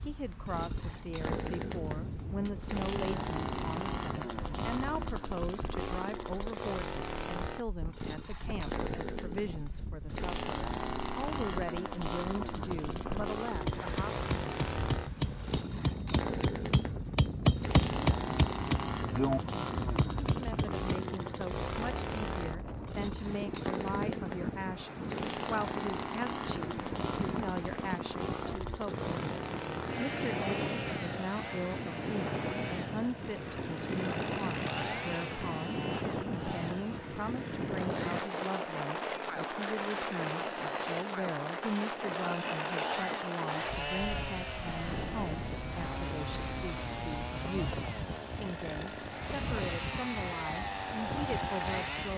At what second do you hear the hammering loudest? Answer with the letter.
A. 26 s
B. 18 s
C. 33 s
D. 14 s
B.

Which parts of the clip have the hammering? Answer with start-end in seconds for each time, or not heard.
13.4-20.8.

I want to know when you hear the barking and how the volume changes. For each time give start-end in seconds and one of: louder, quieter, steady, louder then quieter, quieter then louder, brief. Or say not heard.
not heard.